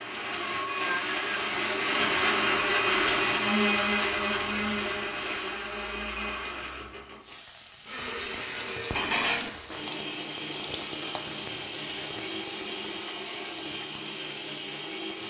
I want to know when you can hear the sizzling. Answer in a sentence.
The sizzling can be heard from 7.2 to 15.2 s.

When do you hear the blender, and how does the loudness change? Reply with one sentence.
You can hear the blender from 0.0 to 15.2 s, getting quieter.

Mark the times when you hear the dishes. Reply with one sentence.
The dishes can be heard from 8.9 to 9.5 s.